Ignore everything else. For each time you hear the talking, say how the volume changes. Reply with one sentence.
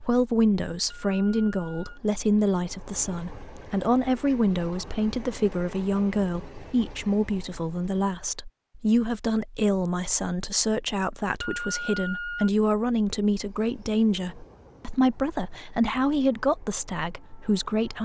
You can hear the talking from 0.0 to 18.0 s, at a steady volume.